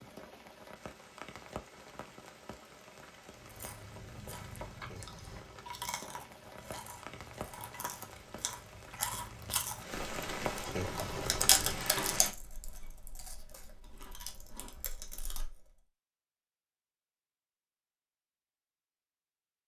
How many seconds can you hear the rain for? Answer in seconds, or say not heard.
12 s.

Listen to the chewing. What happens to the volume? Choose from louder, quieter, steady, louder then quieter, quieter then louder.
louder then quieter.